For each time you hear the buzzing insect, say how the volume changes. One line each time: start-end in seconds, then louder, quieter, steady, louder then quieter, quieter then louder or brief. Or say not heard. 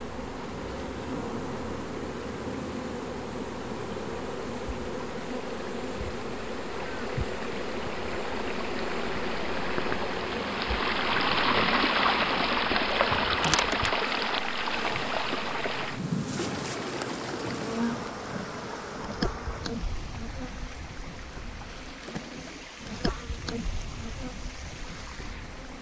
0.0-25.7 quieter.